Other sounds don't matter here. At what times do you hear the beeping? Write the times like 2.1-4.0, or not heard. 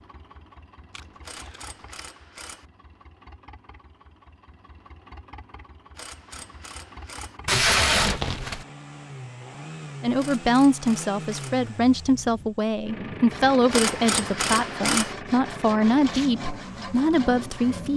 not heard.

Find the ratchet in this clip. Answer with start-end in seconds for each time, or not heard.
1.2-2.6, 6.0-7.4, 10.2-11.6, 13.7-15.2.